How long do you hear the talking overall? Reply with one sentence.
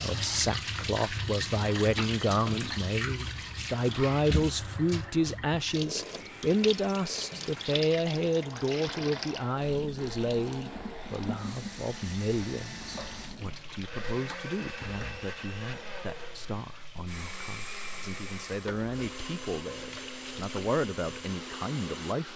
The talking can be heard for 22 seconds in total.